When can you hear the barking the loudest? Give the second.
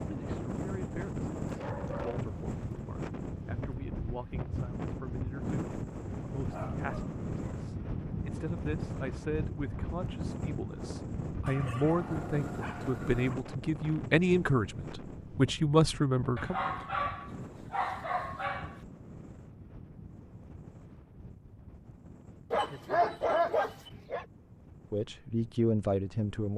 23 s.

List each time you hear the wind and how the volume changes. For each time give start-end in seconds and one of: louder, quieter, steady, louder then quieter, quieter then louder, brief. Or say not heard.
0.0-26.5 quieter.